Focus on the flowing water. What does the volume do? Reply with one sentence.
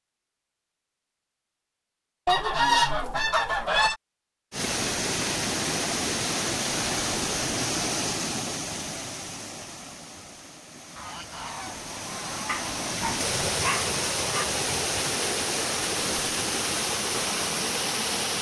The volume of the flowing water goes down, then up.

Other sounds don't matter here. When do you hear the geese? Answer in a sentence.
The geese can be heard from 2.2 to 4.0 s and from 10.9 to 12.9 s.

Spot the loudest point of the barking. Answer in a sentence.
The loudest moment of the barking is at 14 seconds.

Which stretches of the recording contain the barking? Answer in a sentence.
You can hear the barking from 12.4 to 14.4 s.